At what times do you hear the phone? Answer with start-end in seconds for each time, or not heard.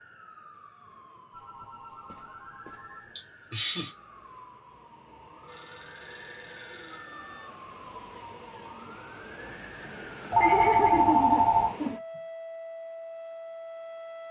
1.3-3.1, 5.5-7.5, 10.3-11.8.